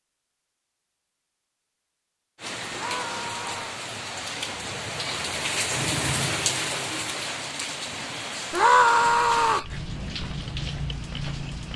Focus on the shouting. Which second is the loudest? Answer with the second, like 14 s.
9 s.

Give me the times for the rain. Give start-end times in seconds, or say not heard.
2.4-11.7.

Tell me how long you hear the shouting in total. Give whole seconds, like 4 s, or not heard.
2 s.